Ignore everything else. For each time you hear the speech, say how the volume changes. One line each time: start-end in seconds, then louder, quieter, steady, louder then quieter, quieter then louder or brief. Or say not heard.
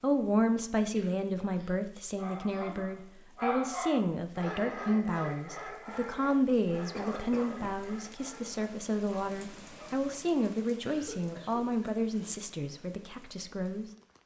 0.0-13.8 steady.